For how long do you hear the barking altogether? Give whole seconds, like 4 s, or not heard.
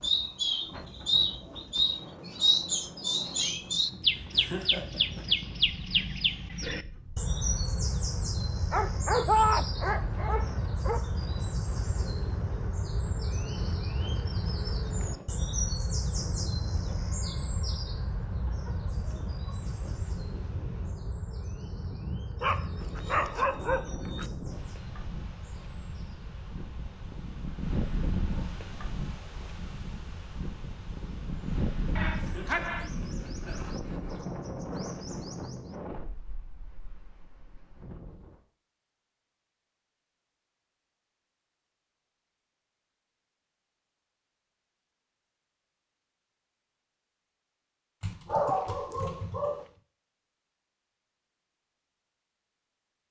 7 s.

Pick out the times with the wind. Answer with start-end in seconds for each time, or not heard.
0.0-38.4.